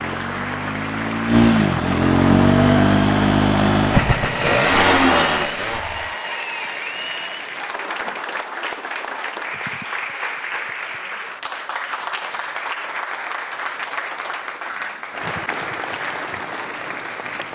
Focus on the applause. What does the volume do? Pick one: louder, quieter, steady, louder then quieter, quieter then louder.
steady.